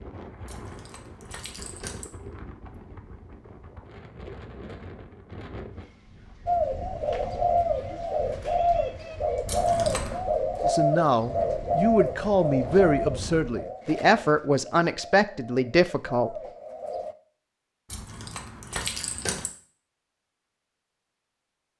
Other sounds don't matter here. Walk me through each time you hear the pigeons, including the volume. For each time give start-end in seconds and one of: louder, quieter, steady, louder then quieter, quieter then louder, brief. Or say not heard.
6.5-17.1 quieter.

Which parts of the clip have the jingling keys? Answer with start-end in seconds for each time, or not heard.
0.5-2.0, 9.4-10.2, 17.9-19.5.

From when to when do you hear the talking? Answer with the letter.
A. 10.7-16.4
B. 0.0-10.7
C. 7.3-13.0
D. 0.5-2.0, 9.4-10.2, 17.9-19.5
A.